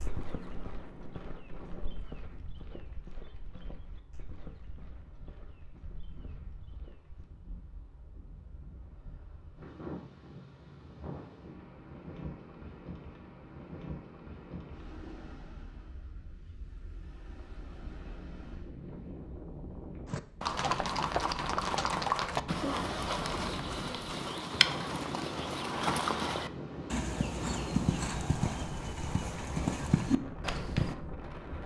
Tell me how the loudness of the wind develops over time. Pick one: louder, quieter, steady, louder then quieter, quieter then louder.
louder.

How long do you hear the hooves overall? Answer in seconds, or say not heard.
18 s.